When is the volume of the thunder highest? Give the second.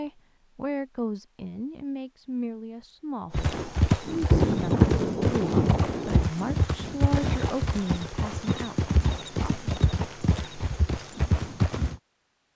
5 s.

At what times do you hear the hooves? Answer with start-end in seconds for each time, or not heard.
3.3-11.9.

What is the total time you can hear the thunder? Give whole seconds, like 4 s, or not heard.
2 s.